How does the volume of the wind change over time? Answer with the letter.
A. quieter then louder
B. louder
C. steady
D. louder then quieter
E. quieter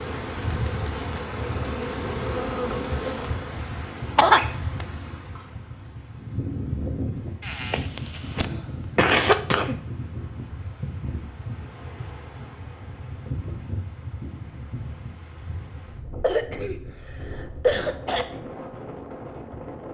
E.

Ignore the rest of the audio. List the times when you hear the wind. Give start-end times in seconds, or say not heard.
0.0-19.8.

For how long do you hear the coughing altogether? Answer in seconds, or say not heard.
5 s.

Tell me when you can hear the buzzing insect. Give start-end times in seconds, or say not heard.
0.0-3.6.